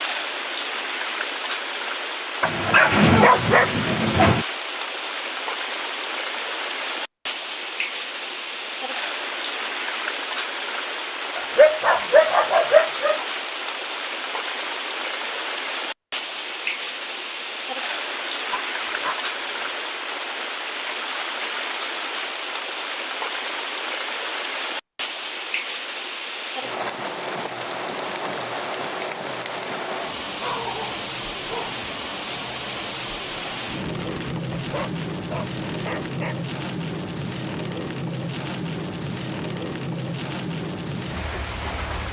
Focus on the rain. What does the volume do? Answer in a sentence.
The loudness of the rain stays about the same.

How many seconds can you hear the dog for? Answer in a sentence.
The dog can be heard for 9 seconds in total.